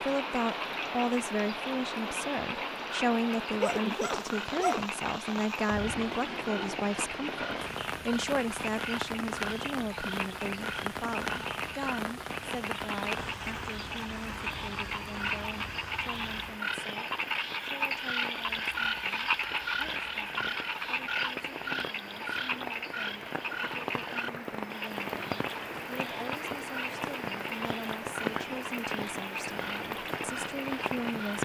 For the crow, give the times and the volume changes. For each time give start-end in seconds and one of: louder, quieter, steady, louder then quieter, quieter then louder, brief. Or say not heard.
not heard.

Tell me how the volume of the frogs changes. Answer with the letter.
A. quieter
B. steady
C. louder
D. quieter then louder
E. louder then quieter
E.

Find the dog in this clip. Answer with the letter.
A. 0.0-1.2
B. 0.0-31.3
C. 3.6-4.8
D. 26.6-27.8
C.